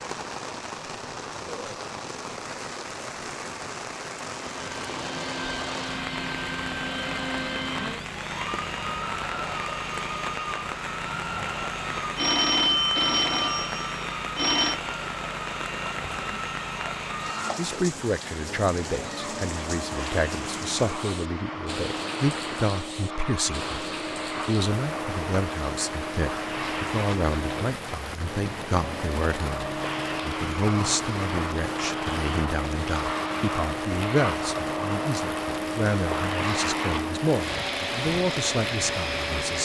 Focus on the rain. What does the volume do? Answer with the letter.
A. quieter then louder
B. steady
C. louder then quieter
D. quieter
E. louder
B.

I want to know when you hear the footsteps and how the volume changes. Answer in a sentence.
The footsteps can't be heard in this clip.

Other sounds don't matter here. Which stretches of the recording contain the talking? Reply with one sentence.
The talking can be heard from 17.6 to 23.8 s and from 24.4 to 39.6 s.